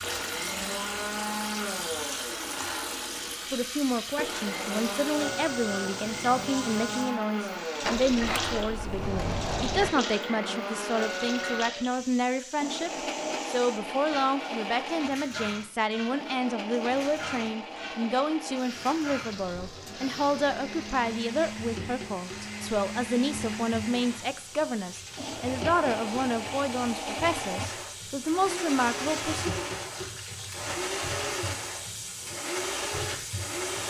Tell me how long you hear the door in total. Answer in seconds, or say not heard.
2 s.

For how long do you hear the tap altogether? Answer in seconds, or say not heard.
34 s.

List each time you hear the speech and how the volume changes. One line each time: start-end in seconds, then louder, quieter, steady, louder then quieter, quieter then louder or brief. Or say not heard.
3.5-29.5 steady.